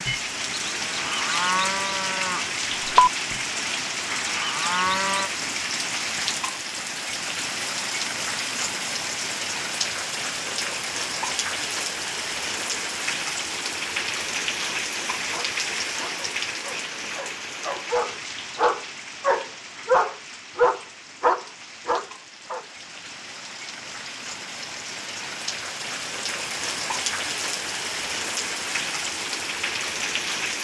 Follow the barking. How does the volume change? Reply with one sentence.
The loudness of the barking goes up.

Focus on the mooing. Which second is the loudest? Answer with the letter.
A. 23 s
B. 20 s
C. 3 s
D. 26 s
C.